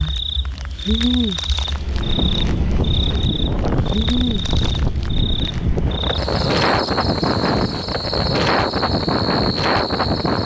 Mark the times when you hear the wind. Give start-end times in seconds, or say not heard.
1.6-10.4.